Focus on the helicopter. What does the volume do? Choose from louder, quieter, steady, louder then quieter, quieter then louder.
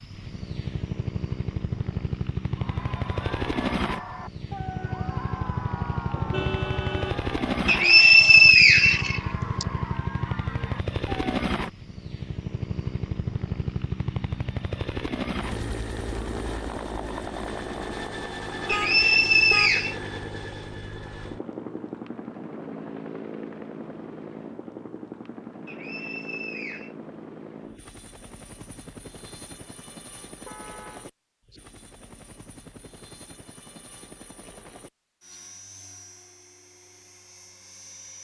quieter.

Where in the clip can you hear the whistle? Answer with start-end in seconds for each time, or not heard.
7.7-9.7, 18.6-19.9, 25.6-26.9.